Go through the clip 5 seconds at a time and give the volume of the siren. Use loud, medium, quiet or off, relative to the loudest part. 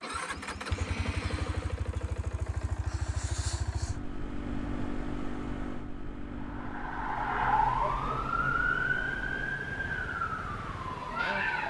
off, loud, loud.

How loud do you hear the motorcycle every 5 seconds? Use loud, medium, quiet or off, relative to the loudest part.
loud, loud, medium.